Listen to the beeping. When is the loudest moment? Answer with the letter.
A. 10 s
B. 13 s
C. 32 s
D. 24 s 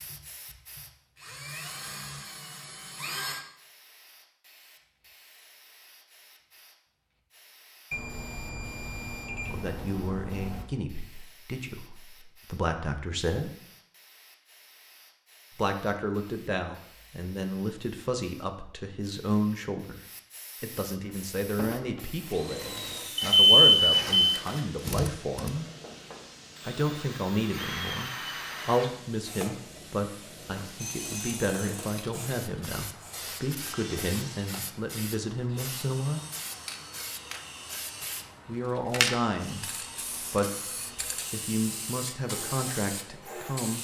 D.